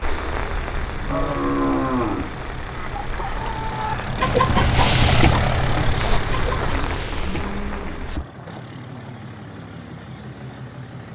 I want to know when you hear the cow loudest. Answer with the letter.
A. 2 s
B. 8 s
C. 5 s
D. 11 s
A.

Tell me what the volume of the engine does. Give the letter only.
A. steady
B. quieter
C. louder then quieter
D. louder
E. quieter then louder
C.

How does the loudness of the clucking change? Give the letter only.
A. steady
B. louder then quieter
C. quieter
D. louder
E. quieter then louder
C.